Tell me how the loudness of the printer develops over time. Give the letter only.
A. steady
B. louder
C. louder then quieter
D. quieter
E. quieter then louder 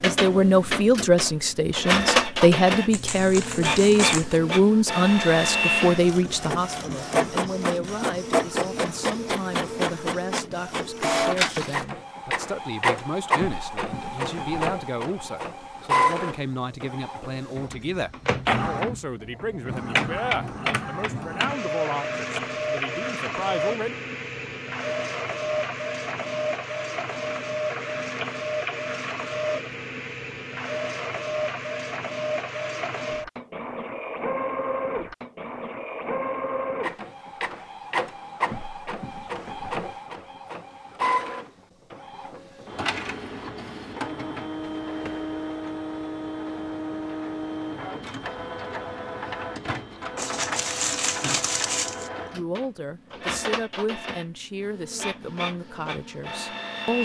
D.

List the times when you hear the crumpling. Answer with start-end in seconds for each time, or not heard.
2.9-4.4, 50.1-52.1.